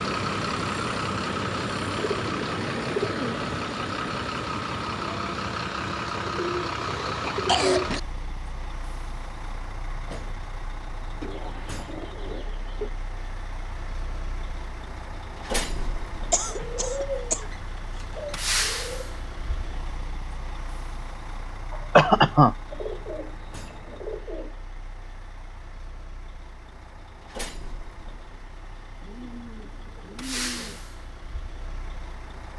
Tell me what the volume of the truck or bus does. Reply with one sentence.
The volume of the truck or bus goes down.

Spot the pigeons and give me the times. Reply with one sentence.
You can hear the pigeons from 1.9 to 3.5 s, from 6.2 to 8.0 s, from 11.2 to 12.9 s, from 16.4 to 19.1 s, from 22.7 to 24.5 s and from 29.0 to 30.8 s.